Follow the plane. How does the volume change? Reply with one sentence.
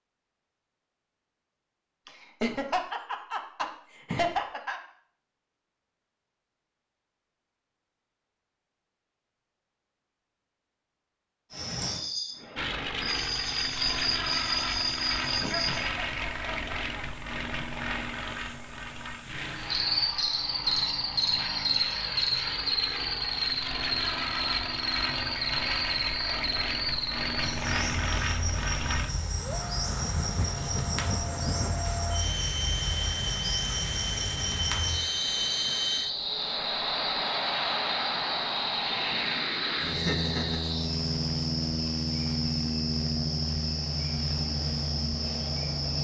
The loudness of the plane stays about the same.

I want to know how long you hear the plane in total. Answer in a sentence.
The plane can be heard for 33 seconds in total.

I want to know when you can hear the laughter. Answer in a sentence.
The laughter can be heard from 2.0 to 4.8 s, from 15.4 to 17.1 s and from 39.4 to 40.6 s.